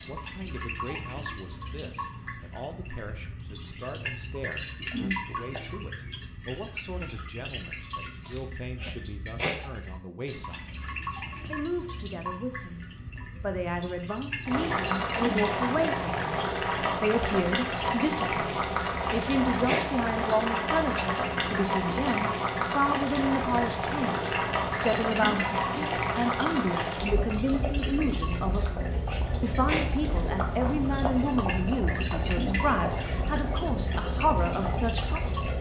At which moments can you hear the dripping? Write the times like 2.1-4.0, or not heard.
0.0-35.5.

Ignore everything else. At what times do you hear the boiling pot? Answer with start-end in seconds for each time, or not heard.
14.4-35.5.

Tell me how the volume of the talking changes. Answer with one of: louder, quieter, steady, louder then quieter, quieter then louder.
louder.